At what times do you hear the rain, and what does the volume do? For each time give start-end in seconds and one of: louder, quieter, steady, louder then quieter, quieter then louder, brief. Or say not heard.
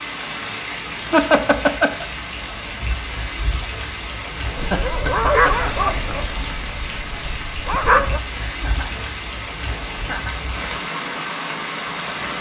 0.0-12.3 steady.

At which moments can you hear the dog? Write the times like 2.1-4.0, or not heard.
4.5-8.2.